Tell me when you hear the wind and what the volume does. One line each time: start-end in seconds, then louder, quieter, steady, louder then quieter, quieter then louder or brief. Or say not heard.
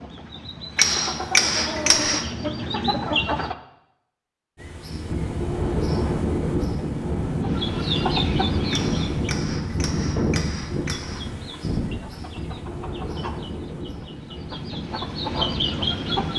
4.5-16.3 quieter.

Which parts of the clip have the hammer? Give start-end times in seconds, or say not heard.
0.8-2.3, 8.7-11.3.